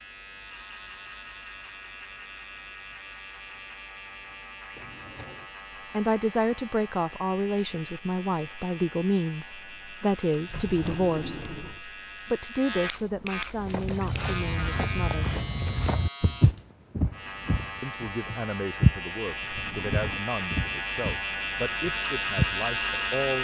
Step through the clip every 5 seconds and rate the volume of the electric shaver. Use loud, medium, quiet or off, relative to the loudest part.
quiet, quiet, medium, medium, loud.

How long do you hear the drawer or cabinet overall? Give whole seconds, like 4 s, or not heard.
3 s.